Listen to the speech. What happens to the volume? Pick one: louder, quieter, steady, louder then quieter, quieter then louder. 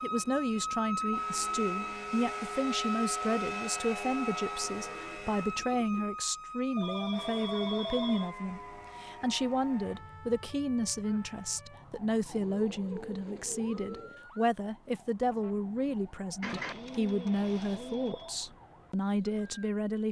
steady.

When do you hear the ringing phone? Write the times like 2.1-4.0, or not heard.
6.8-8.3, 16.9-18.4.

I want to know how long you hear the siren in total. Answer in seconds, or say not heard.
20 s.